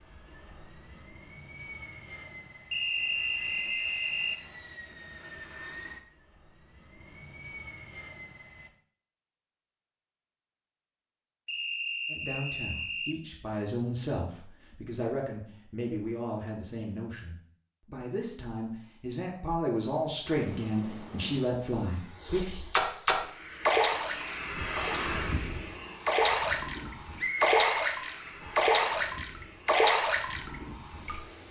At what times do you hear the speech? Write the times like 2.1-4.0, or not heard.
12.1-22.4.